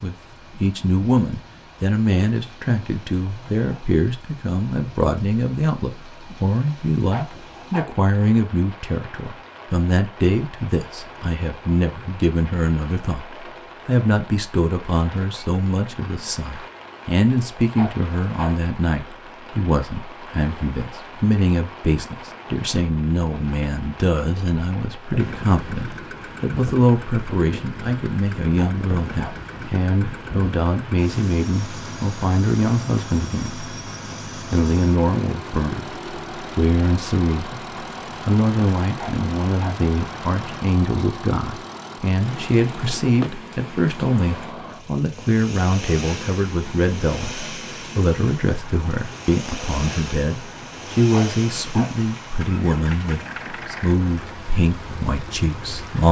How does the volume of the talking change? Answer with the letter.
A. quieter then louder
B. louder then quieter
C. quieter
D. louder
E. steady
E.